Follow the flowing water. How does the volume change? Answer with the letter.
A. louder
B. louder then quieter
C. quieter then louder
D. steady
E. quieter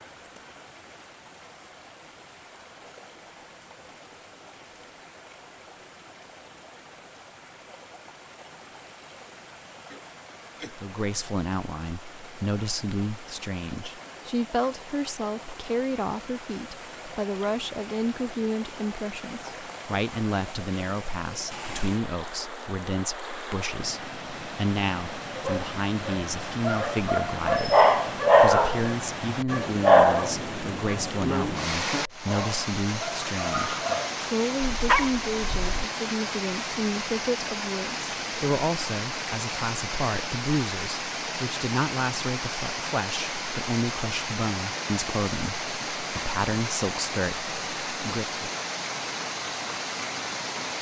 A.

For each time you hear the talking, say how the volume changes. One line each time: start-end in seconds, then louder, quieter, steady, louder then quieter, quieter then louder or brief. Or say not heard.
10.7-48.5 steady.